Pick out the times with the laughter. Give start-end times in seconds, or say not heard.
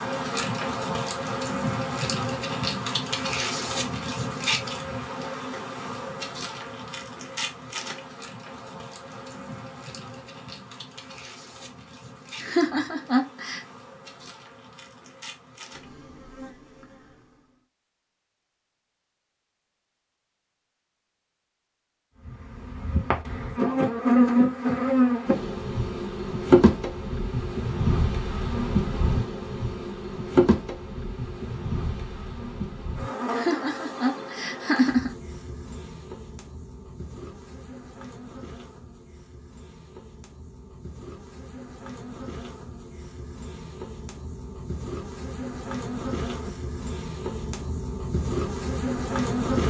12.4-13.6, 33.3-35.1.